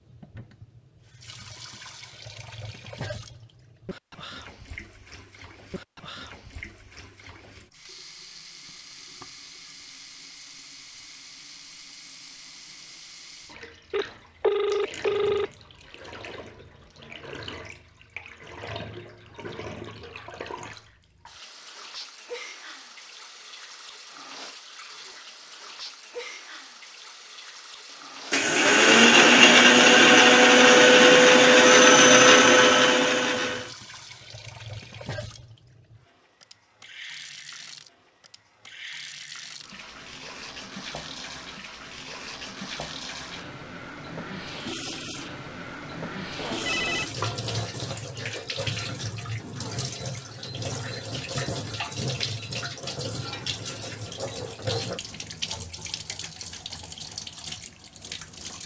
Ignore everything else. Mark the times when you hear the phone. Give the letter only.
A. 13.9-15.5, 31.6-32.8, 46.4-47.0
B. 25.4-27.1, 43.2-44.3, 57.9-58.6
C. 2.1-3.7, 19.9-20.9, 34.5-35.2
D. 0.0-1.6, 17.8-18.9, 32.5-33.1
A.